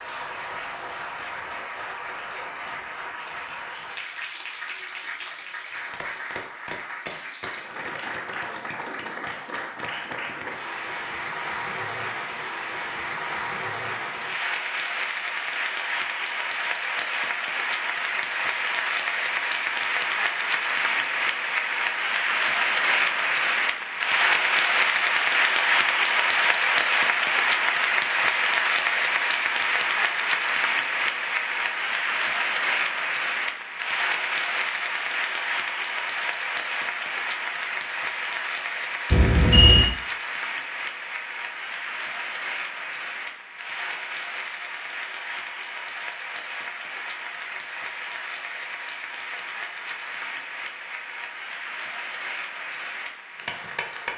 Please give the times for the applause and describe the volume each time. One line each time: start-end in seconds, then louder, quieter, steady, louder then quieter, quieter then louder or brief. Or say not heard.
0.0-54.1 louder then quieter.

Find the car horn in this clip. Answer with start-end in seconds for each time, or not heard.
39.1-39.9.